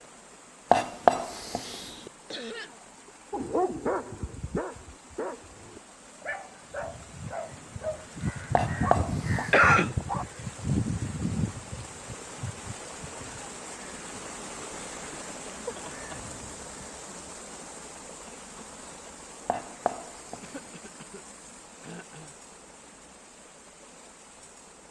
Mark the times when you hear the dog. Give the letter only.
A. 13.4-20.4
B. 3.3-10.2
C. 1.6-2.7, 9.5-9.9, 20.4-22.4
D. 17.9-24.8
B.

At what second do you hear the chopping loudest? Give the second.
1 s.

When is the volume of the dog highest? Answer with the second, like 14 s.
4 s.